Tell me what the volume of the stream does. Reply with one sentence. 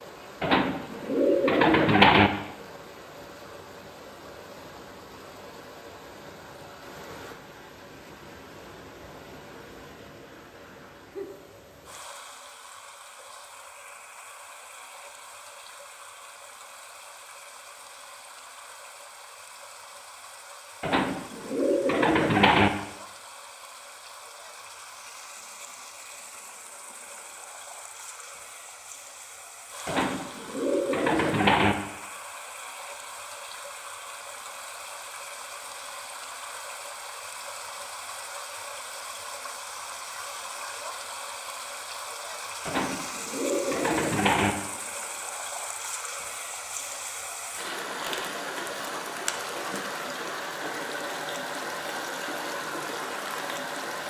The volume of the stream goes up.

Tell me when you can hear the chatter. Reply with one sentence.
You can't hear the chatter here.